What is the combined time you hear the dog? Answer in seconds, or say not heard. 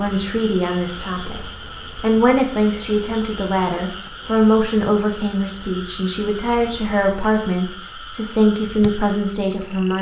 not heard.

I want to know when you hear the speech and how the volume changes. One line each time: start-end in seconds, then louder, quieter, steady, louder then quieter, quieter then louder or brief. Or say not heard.
0.0-9.9 steady.